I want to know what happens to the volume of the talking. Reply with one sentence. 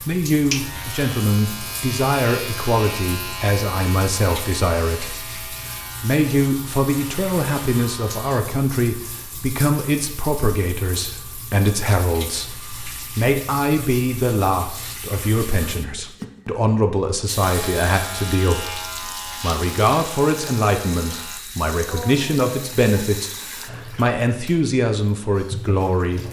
The loudness of the talking stays about the same.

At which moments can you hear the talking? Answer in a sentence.
You can hear the talking from 0.0 to 26.2 s.